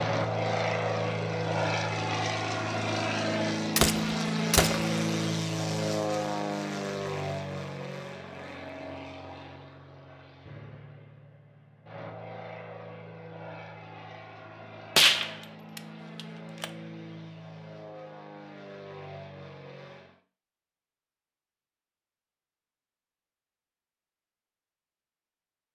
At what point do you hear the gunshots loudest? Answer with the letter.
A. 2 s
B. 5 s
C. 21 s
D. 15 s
D.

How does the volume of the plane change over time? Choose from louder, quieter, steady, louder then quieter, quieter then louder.
quieter.